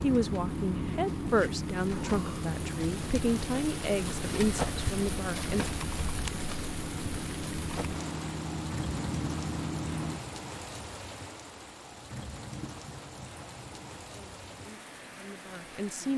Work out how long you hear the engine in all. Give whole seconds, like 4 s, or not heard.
10 s.